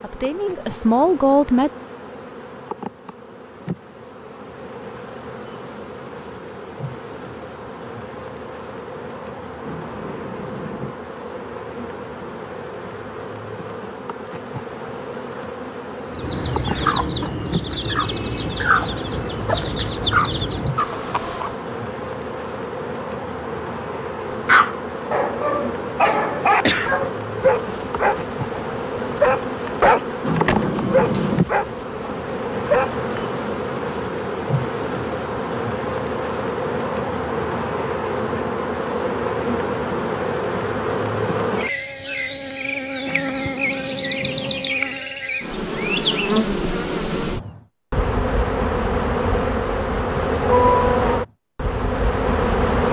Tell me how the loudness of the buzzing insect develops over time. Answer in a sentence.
The loudness of the buzzing insect goes up.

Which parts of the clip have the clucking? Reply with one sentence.
You can hear the clucking from 16.1 to 21.6 s.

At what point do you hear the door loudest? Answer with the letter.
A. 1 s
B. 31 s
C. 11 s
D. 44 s
B.